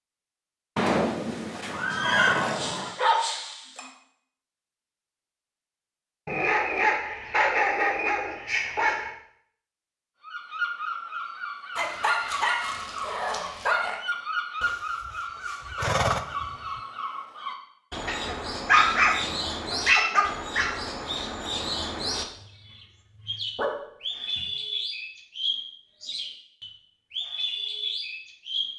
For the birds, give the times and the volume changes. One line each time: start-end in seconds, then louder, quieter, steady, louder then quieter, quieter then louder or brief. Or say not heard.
10.2-28.7 steady.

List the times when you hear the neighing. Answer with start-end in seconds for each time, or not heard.
0.8-3.0, 14.6-16.8.